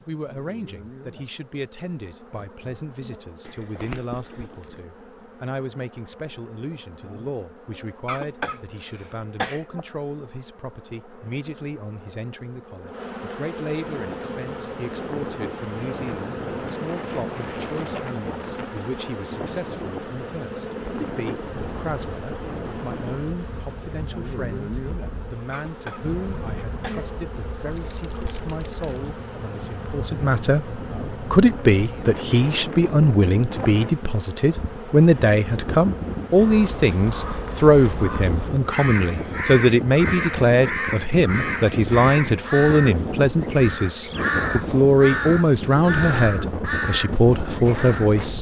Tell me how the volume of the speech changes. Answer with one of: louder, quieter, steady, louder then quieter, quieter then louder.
louder.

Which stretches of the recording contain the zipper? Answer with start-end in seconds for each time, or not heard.
3.4-4.8.